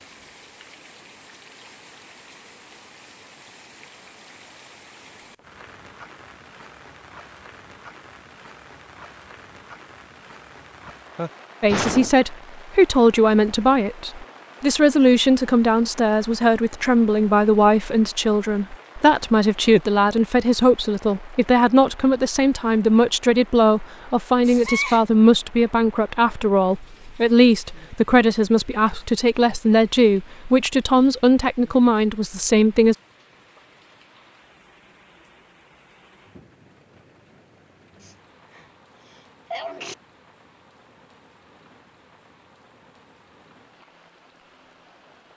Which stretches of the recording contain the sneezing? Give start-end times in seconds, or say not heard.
10.8-12.2, 24.4-25.0, 38.0-40.0.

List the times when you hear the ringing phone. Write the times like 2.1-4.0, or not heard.
not heard.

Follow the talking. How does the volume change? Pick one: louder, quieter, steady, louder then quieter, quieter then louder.
steady.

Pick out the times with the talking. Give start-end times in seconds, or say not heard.
11.6-33.0.